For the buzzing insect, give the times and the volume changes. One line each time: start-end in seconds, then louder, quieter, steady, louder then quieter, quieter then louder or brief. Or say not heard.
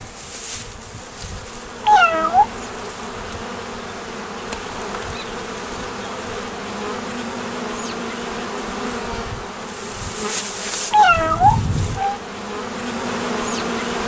0.0-14.0 louder.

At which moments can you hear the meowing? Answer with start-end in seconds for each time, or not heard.
1.9-2.5, 10.9-12.2.